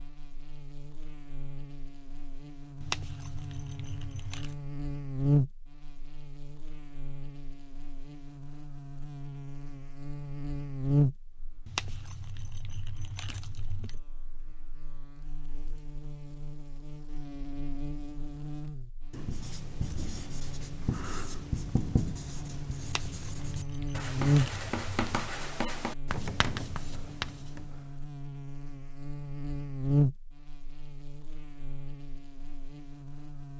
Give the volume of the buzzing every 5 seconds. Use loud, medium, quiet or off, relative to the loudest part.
medium, loud, loud, medium, loud, loud, loud.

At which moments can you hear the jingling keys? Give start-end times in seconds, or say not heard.
2.8-4.5, 11.7-14.0, 22.8-25.3.